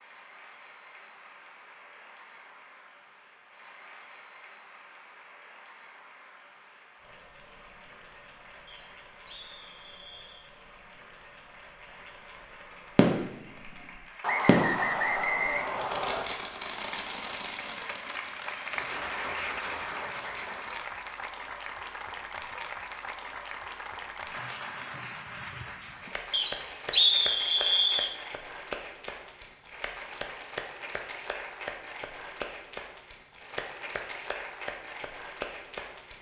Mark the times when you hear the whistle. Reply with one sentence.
The whistle can be heard from 8.7 to 10.4 s, from 14.2 to 16.2 s and from 26.3 to 28.1 s.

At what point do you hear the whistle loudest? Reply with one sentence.
The volume of the whistle peaks at 27 seconds.